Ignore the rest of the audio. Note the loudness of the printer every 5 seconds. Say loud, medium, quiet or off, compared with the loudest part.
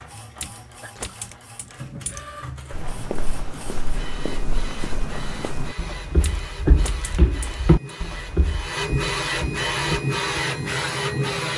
quiet, medium, loud.